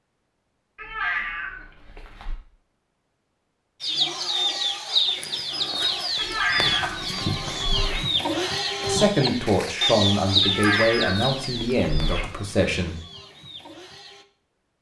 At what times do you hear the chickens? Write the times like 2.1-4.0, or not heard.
3.8-14.2.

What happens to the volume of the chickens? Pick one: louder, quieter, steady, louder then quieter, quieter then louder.
quieter.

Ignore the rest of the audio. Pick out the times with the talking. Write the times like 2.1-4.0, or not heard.
8.8-12.9.